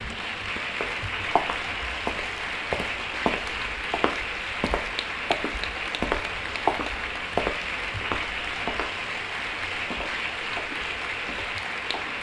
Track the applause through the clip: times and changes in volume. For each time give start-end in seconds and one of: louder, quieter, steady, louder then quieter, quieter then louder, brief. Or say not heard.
0.0-12.1 steady.